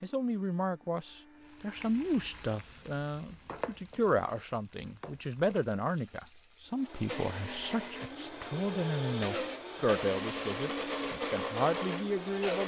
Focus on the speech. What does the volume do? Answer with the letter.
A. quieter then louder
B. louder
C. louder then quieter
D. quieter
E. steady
E.